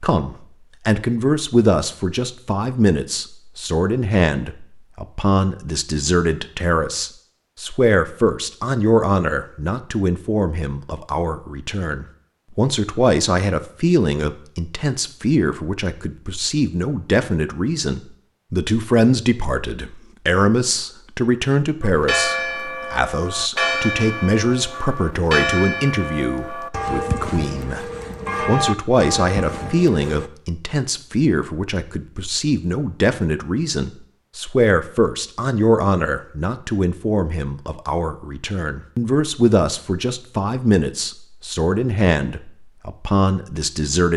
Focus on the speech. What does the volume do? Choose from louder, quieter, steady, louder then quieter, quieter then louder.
steady.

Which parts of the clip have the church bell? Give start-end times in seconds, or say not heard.
21.8-30.3.